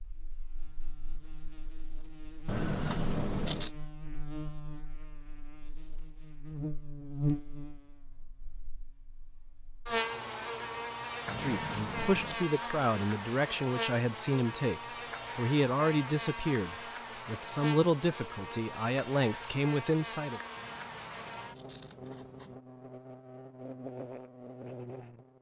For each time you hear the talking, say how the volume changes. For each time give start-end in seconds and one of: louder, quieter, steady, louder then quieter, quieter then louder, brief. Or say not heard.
11.3-20.4 steady.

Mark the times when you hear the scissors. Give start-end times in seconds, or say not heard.
2.5-3.8, 11.2-12.3, 20.6-22.6.